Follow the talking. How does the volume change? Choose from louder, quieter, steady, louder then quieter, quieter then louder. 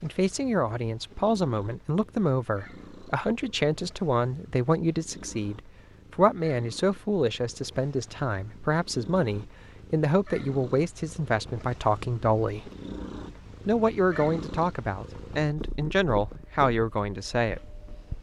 steady.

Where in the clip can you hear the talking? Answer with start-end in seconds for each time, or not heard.
0.0-12.7, 13.7-17.7.